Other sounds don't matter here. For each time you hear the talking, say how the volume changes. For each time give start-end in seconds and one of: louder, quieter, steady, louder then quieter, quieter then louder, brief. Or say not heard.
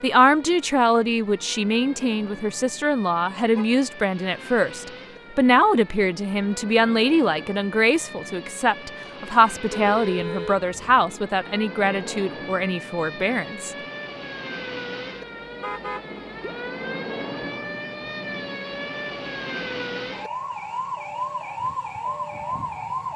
0.0-13.7 steady.